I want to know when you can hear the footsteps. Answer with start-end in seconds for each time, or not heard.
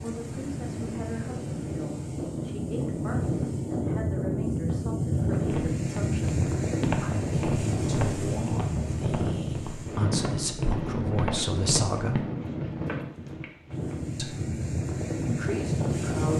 5.5-12.7.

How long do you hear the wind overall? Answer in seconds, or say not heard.
16 s.